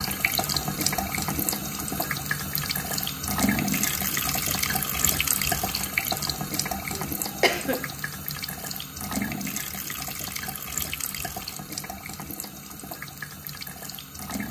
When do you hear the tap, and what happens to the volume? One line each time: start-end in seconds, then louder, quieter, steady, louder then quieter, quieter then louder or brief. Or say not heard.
0.0-14.4 quieter.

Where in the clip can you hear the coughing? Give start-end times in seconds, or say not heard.
6.9-7.9.